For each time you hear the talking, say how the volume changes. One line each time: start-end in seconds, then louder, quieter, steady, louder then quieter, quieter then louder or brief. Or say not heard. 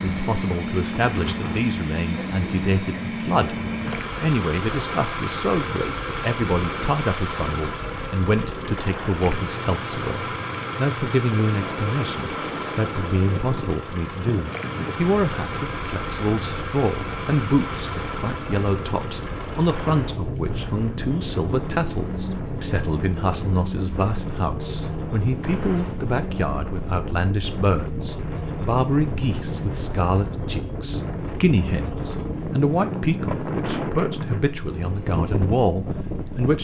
0.1-36.5 steady.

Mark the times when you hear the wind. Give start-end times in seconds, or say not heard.
0.0-36.5.